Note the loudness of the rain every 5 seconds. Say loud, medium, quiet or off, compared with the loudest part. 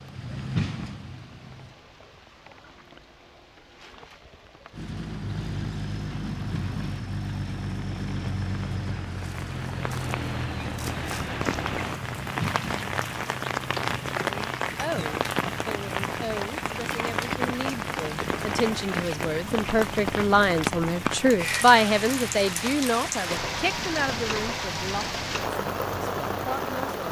quiet, quiet, loud, loud, loud, loud.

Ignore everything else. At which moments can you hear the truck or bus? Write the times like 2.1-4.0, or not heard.
0.0-1.8, 4.7-26.8.